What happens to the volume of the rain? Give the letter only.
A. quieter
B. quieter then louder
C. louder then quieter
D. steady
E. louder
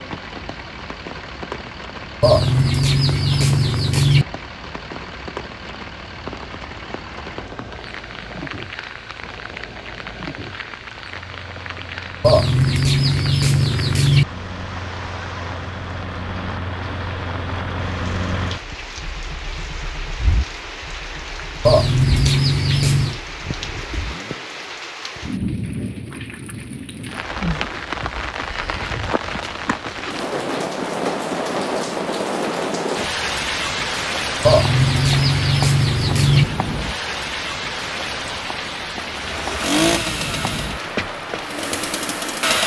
E.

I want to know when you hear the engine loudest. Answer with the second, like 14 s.
40 s.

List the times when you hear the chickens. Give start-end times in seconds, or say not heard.
2.2-4.2, 12.2-14.2, 21.6-23.2, 34.5-36.5.